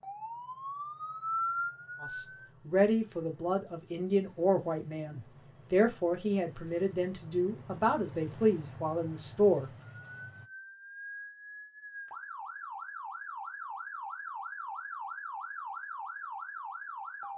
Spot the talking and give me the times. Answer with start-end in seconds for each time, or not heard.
2.0-9.7.